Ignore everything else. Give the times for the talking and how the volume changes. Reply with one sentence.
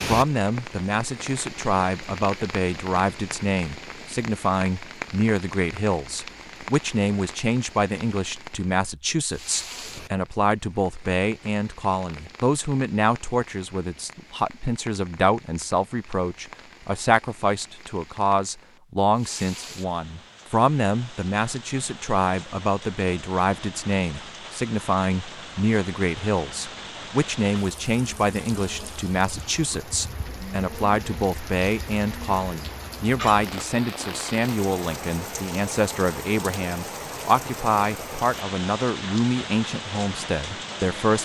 The talking can be heard from 0.1 to 41.1 s, at a steady volume.